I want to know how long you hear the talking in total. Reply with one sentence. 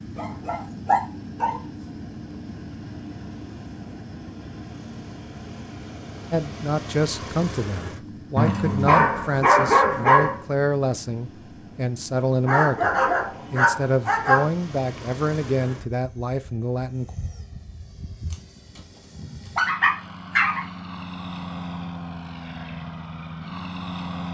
You can hear the talking for 11 seconds altogether.